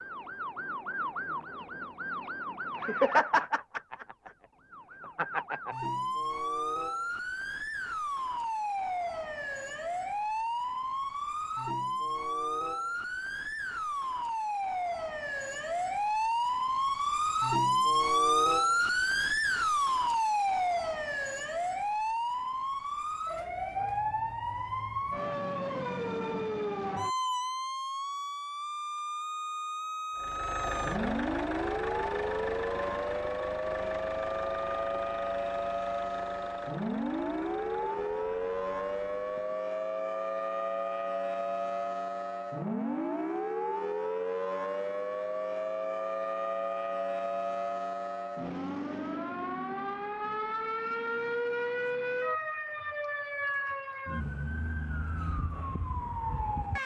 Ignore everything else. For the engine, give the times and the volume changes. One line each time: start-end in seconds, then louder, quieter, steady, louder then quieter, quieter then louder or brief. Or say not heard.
30.1-39.6 quieter.